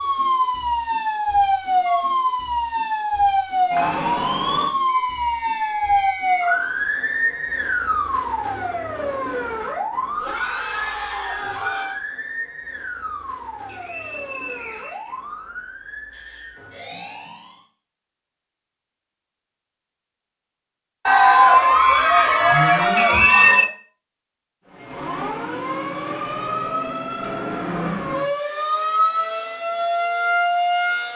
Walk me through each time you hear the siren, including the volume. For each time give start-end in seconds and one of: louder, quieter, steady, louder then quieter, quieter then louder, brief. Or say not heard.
0.0-17.6 quieter
24.6-31.1 louder.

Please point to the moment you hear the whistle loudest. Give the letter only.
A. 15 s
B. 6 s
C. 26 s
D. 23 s
D.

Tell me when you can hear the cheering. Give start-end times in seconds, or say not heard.
10.2-12.0, 21.1-23.7.